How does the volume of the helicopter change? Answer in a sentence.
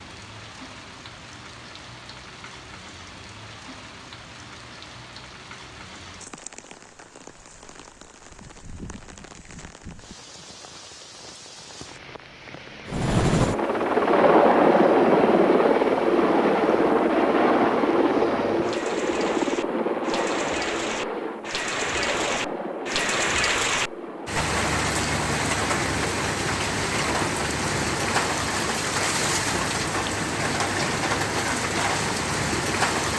The volume of the helicopter goes down.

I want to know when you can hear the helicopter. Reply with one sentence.
The helicopter can be heard from 12.8 to 33.1 s.